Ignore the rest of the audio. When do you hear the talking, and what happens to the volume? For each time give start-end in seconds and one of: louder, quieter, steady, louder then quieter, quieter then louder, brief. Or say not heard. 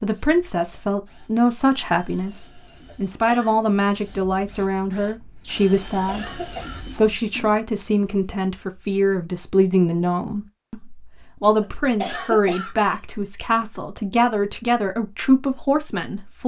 0.0-16.4 steady.